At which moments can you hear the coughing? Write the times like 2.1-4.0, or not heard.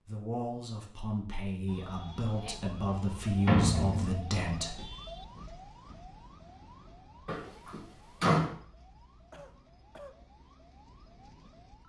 9.3-10.2.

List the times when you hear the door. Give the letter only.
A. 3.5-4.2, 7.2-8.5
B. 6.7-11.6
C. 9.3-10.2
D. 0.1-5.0
A.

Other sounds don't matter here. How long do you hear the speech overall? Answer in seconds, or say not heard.
5 s.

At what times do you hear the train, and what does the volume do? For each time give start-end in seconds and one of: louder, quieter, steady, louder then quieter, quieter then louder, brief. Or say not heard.
not heard.